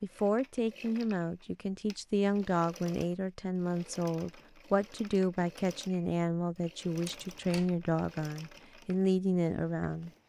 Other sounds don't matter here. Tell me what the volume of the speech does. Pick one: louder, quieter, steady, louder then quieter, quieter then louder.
steady.